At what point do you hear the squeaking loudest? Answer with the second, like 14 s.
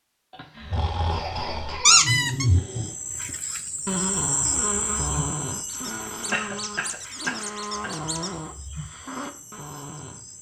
2 s.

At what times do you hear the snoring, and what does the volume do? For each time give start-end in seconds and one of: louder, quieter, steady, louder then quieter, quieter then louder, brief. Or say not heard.
0.6-10.2 quieter.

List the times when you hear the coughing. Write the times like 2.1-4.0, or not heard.
0.3-2.0, 6.3-7.9.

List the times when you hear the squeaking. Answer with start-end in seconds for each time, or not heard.
1.9-2.5, 5.7-8.3.